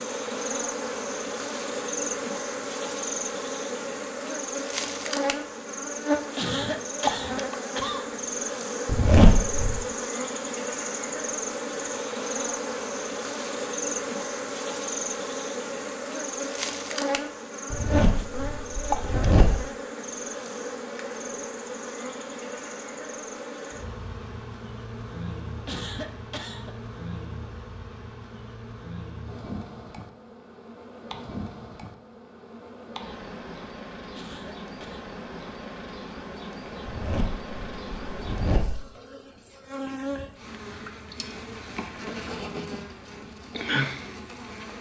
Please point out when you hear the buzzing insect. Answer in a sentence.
You can hear the buzzing insect from 0.0 to 44.7 s.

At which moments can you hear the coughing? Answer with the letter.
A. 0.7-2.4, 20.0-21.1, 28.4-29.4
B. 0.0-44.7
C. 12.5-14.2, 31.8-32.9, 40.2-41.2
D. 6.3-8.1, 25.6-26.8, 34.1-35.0
D.